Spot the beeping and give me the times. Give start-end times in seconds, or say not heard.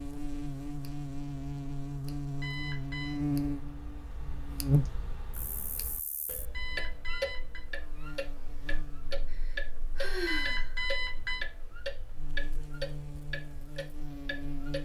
2.4-3.2, 6.5-7.6, 10.2-11.4.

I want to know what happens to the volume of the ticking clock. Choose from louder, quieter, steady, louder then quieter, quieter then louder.
louder.